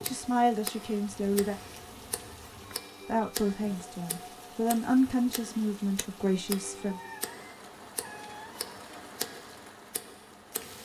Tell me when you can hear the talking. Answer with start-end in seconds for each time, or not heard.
0.0-1.6, 3.0-7.0.